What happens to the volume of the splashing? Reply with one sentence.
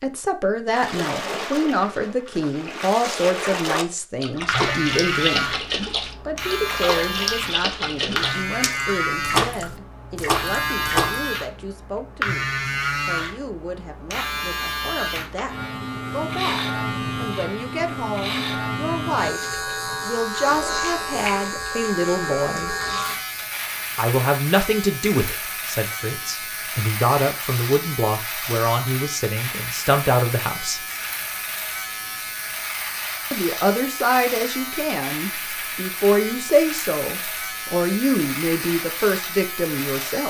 The volume of the splashing goes up.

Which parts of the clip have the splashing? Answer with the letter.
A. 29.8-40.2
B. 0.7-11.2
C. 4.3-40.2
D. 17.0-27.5
B.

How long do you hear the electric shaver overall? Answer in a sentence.
The electric shaver can be heard for 36 seconds in total.